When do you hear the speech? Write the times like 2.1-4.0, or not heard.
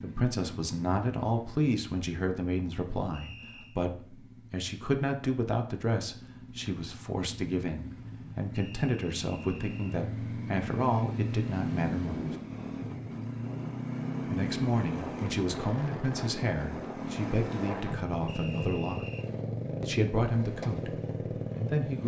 0.0-12.2, 14.2-19.1, 19.8-22.0.